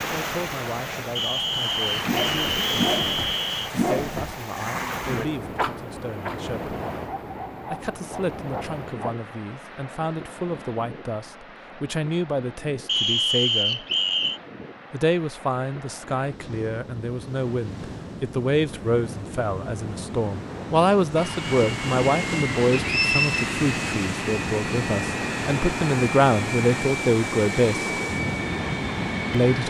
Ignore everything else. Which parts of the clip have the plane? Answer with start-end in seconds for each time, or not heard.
21.1-29.6.